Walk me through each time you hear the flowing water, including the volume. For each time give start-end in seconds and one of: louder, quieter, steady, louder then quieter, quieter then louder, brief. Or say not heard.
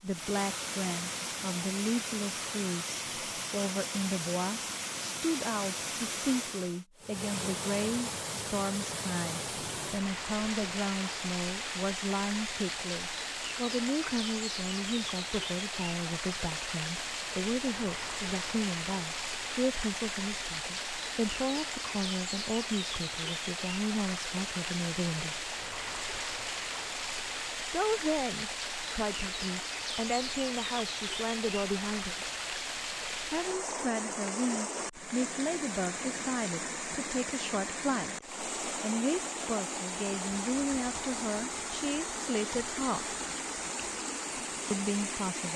0.0-45.5 steady.